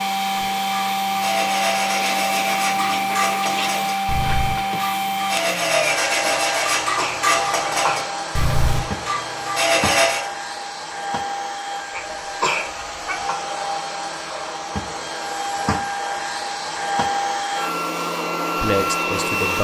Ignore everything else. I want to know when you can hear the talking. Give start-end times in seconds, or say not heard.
18.6-19.5.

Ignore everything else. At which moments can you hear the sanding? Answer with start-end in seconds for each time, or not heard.
0.4-10.3.